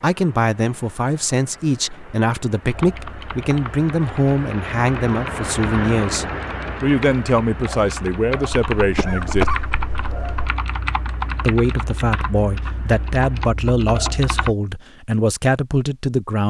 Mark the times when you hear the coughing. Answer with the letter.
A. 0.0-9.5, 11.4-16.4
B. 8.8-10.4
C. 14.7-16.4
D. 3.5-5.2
B.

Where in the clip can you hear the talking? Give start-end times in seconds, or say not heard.
0.0-9.5, 11.4-16.4.